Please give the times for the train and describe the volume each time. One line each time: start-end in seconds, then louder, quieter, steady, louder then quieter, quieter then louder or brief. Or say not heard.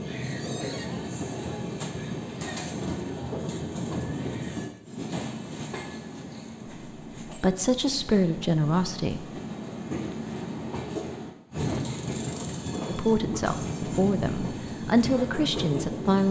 0.0-16.2 quieter then louder.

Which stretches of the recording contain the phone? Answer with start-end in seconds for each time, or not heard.
not heard.